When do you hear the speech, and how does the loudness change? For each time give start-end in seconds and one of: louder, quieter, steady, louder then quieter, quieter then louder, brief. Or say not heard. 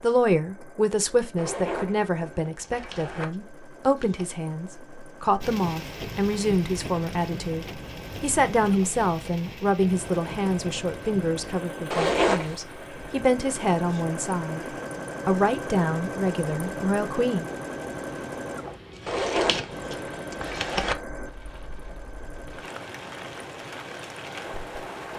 0.0-14.7 steady
15.2-17.4 brief.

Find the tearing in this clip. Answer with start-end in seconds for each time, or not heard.
2.6-4.3, 18.9-20.9.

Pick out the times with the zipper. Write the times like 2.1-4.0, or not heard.
1.4-3.2, 11.9-12.6, 19.1-20.9.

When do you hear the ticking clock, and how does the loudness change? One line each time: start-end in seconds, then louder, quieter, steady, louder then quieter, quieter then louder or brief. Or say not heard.
not heard.